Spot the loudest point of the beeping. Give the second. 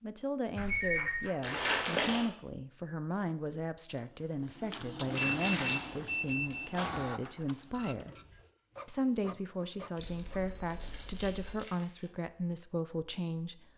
11 s.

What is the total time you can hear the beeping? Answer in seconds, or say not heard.
4 s.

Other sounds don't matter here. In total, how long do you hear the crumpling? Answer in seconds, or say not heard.
4 s.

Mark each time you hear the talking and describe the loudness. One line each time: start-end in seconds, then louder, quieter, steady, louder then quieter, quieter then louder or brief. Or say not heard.
0.0-8.2 steady
8.8-13.7 steady.